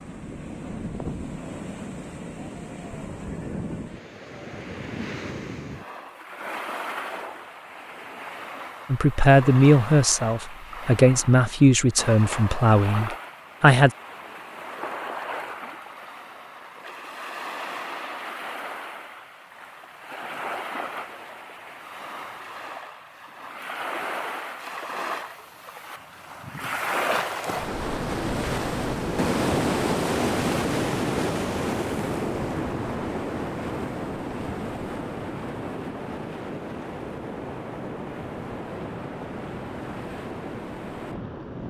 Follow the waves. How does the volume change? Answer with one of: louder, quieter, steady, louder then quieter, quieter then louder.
louder then quieter.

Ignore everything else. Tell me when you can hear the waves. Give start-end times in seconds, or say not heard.
0.0-41.6.